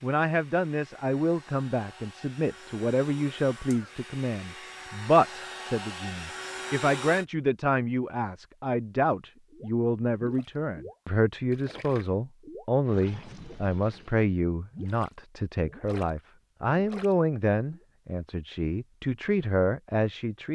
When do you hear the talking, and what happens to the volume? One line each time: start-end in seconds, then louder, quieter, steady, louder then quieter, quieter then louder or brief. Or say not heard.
0.0-20.4 steady.